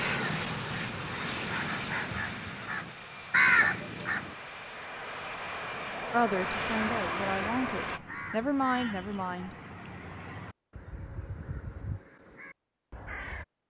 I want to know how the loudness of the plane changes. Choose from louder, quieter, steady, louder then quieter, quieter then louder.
quieter then louder.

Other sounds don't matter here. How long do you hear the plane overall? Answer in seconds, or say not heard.
8 s.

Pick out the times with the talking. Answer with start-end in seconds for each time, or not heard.
6.1-9.5.